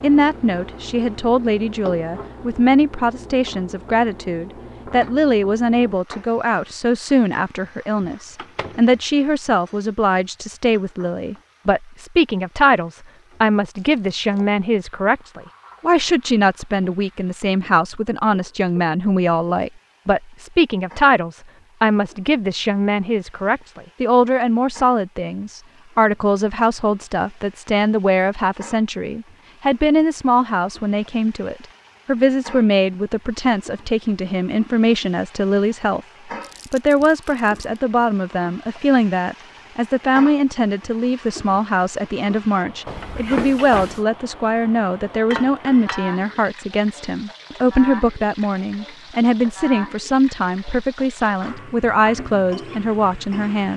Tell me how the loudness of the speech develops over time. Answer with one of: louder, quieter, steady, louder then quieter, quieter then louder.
steady.